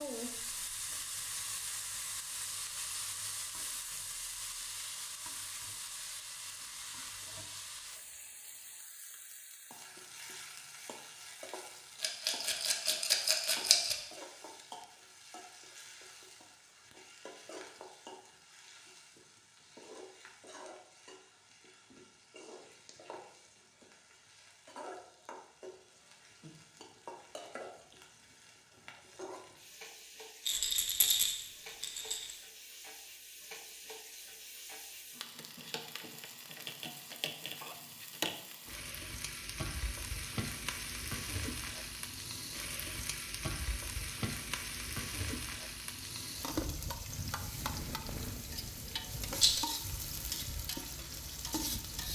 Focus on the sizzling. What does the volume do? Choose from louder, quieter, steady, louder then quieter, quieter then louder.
quieter then louder.